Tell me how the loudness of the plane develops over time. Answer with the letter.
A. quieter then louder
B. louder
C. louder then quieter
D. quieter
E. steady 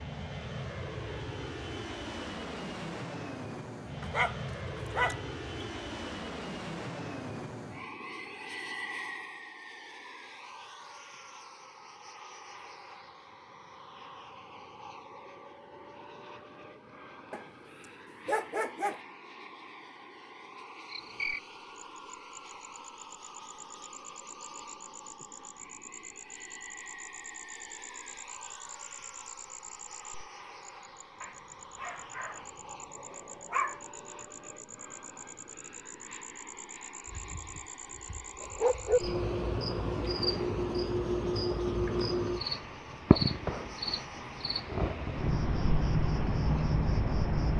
D.